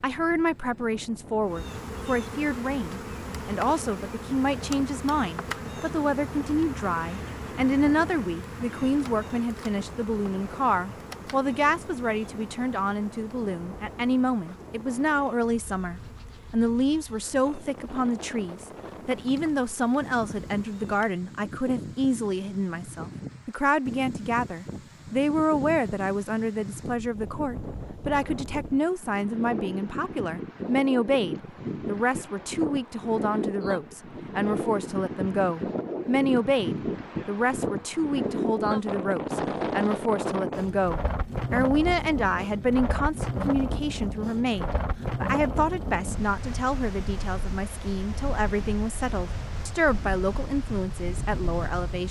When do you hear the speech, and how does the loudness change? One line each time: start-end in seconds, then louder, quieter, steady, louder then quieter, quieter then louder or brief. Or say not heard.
0.0-52.0 steady.